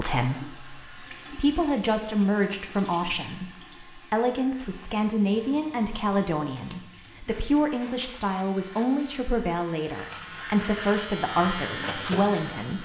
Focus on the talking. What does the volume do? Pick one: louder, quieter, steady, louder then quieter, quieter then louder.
steady.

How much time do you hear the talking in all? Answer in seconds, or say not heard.
13 s.